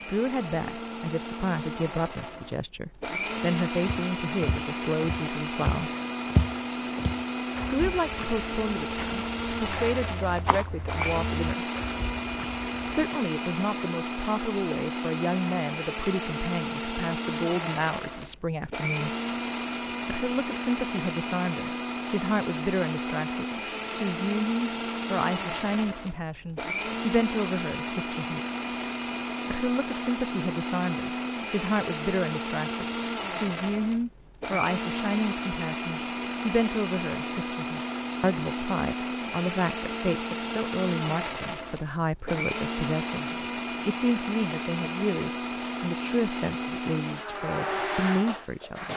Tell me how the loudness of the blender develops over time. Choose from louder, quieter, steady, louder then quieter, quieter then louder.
steady.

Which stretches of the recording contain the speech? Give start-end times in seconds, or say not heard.
0.1-5.9, 7.7-11.7, 12.8-19.1, 20.1-28.4, 29.4-48.9.